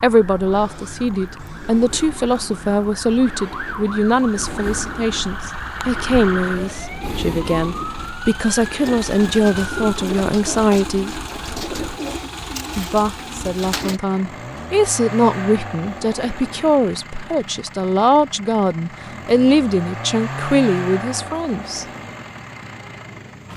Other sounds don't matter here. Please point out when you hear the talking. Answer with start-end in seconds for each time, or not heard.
0.0-11.2, 12.8-21.9.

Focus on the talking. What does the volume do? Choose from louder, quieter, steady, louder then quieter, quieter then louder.
steady.